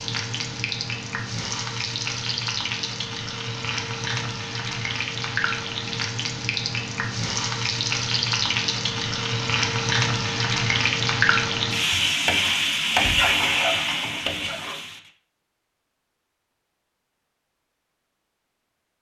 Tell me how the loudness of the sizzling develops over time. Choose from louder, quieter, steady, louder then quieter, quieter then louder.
louder.